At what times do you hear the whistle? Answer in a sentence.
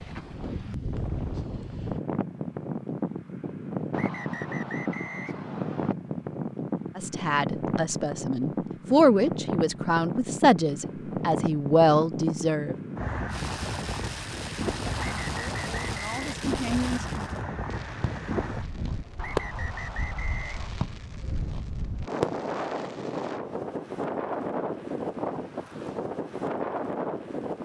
The whistle can be heard from 3.9 to 6.0 s, from 14.9 to 16.2 s and from 19.1 to 20.7 s.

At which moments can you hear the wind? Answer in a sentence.
The wind can be heard from 0.0 to 27.6 s.